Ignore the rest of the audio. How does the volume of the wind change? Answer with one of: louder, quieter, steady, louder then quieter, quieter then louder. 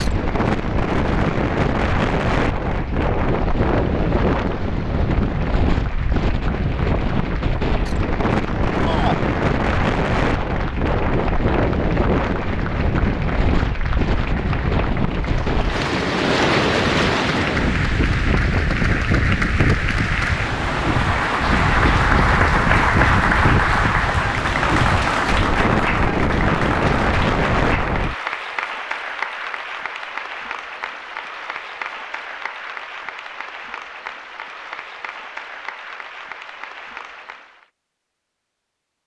steady.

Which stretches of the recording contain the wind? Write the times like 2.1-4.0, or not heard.
0.0-28.1.